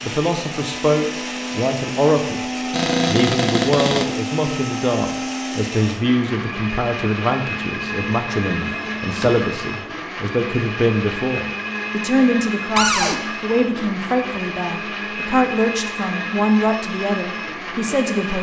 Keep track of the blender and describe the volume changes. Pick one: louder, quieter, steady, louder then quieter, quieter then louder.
steady.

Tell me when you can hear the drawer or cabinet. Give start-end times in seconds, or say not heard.
2.7-4.0, 8.6-9.4, 12.8-13.2.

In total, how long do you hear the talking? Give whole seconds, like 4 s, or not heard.
18 s.